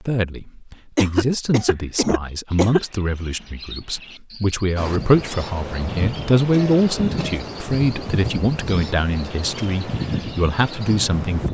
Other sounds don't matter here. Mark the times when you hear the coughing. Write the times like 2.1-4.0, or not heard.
0.9-2.8, 6.5-7.5.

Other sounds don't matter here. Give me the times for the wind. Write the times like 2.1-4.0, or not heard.
4.8-11.4.